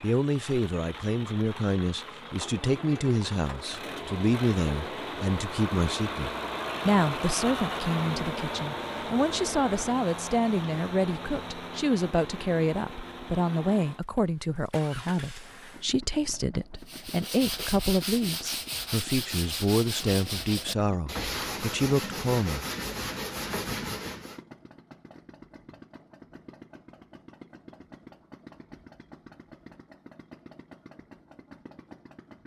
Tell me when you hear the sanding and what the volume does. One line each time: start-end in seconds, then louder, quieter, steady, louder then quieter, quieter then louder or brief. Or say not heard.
16.8-24.4 steady.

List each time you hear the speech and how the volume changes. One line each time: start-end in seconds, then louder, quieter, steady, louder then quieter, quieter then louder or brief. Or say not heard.
0.0-22.6 steady.